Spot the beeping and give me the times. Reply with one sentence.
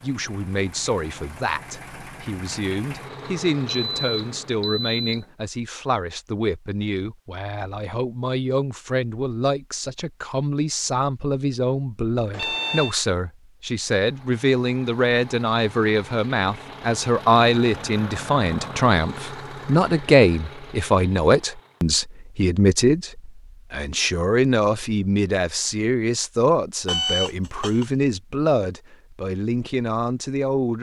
You can hear the beeping from 3.7 to 5.3 s, from 12.3 to 12.9 s and from 26.9 to 27.9 s.